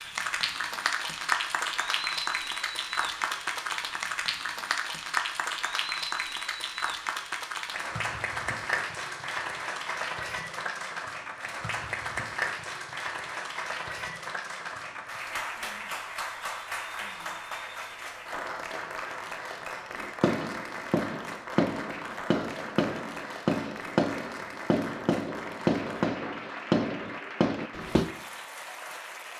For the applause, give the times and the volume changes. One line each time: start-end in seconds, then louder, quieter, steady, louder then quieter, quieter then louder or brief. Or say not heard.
0.0-29.3 quieter.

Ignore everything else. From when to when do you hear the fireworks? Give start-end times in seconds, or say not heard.
19.9-28.1.